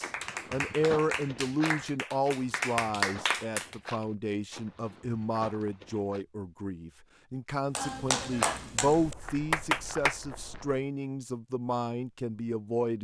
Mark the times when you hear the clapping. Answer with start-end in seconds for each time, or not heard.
0.0-3.8, 7.8-10.2.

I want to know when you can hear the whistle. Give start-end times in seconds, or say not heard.
not heard.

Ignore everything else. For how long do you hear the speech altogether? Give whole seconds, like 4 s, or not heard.
13 s.